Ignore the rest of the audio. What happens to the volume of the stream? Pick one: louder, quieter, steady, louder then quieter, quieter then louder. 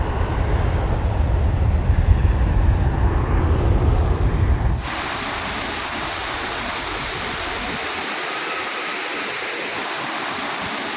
louder.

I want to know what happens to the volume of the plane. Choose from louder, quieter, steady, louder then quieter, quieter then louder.
quieter.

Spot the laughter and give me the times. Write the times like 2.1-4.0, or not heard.
not heard.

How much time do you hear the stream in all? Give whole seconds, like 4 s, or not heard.
11 s.